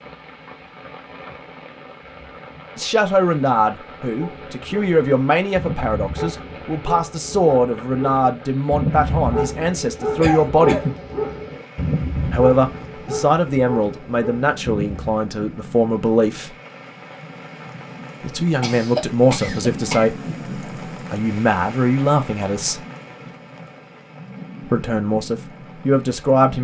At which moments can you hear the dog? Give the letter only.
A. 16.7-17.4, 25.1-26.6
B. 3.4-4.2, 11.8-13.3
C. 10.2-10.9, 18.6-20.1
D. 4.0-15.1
D.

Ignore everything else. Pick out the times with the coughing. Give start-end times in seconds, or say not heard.
10.2-10.9, 18.6-20.1.